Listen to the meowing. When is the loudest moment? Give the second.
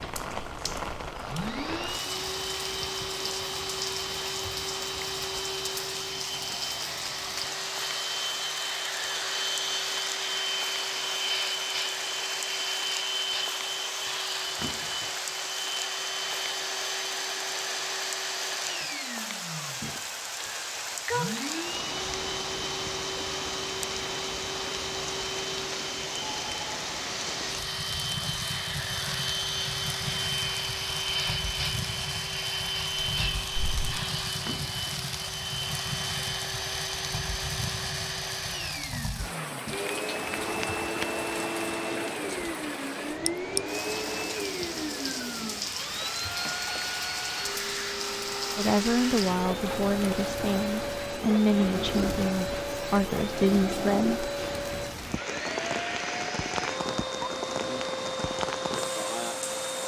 21 s.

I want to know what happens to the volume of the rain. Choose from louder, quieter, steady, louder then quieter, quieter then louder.
steady.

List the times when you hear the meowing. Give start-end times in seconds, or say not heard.
19.8-21.4, 33.1-34.0.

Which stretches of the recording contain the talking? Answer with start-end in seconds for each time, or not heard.
48.5-54.2.